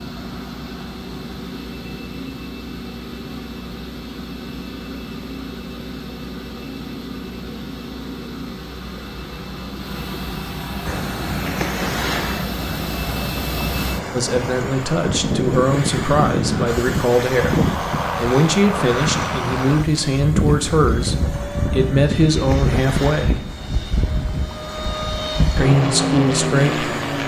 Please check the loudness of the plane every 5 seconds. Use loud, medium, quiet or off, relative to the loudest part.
medium, medium, medium, loud, loud, loud.